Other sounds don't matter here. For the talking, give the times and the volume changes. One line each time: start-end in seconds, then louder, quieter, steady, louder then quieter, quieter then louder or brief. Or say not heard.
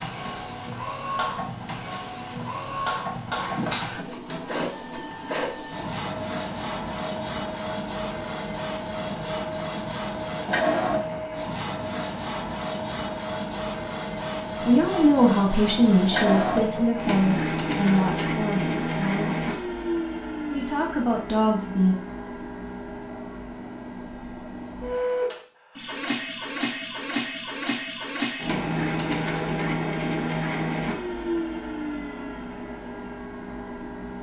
14.6-19.6 quieter
20.5-21.9 brief.